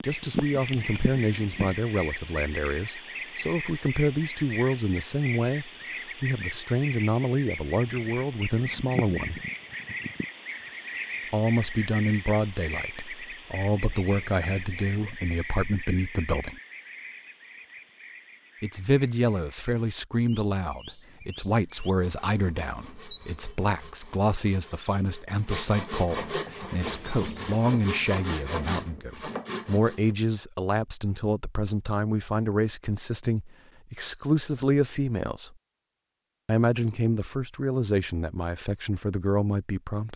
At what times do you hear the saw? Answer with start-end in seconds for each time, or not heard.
21.6-30.1.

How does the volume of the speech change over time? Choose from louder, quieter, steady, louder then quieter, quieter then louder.
steady.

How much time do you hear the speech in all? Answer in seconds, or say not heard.
35 s.